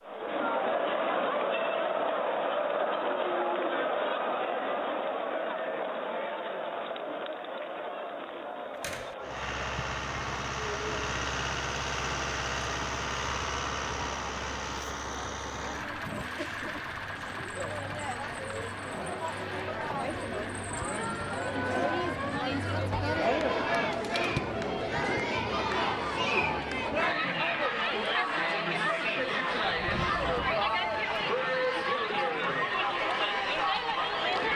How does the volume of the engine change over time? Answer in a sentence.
The volume of the engine goes down.